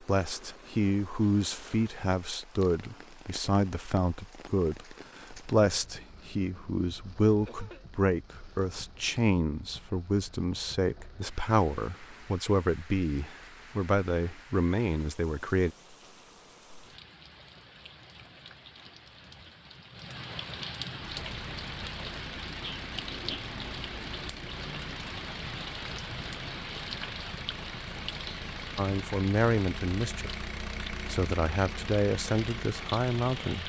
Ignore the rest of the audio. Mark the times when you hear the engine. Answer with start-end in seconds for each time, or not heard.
21.0-33.6.